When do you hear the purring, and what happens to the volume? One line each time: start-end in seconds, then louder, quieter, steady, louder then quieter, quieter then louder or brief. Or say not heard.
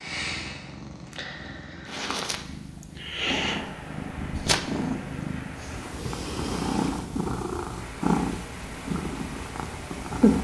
0.0-10.3 louder.